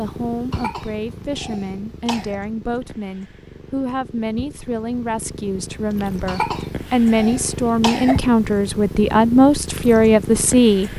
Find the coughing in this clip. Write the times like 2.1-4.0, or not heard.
0.5-2.4, 6.2-8.2.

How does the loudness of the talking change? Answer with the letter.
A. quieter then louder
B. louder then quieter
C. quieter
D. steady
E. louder
E.